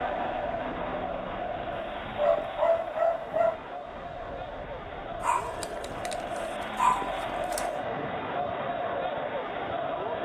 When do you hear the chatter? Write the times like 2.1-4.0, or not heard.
0.0-10.2.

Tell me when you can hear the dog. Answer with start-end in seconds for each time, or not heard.
2.1-3.6, 5.2-7.7.